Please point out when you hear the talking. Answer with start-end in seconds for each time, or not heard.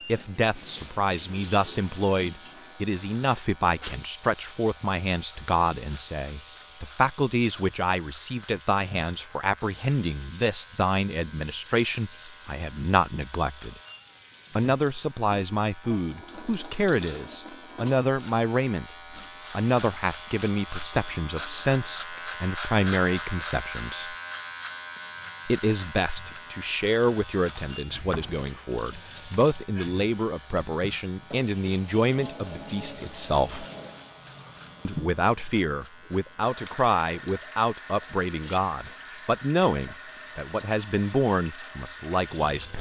0.1-13.8, 14.6-24.1, 25.4-33.6, 34.9-42.7.